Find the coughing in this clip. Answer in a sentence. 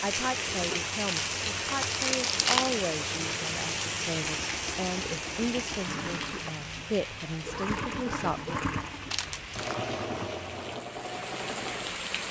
The coughing can't be heard in this clip.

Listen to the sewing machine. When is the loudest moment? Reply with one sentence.
The volume of the sewing machine peaks at 8 seconds.